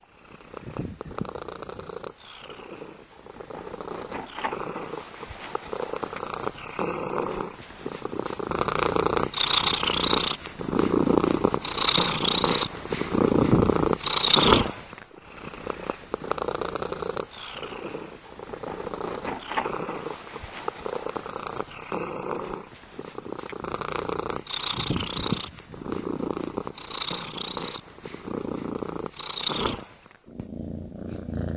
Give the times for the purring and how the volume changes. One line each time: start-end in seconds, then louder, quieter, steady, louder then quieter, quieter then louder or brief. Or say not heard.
0.1-31.5 louder then quieter.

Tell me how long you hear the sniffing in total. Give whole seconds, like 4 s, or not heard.
3 s.